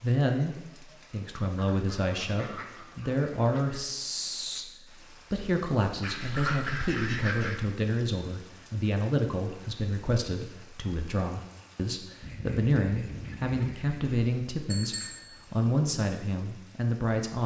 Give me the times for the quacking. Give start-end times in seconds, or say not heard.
1.6-3.8, 6.0-7.7, 12.2-14.1.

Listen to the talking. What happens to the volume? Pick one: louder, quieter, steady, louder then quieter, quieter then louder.
steady.